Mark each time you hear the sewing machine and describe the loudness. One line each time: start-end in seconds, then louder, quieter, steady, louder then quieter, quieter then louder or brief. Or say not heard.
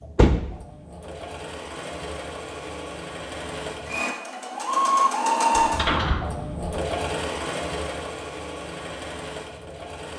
0.0-10.1 louder then quieter.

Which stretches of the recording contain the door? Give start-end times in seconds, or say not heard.
0.1-0.6, 5.6-6.7.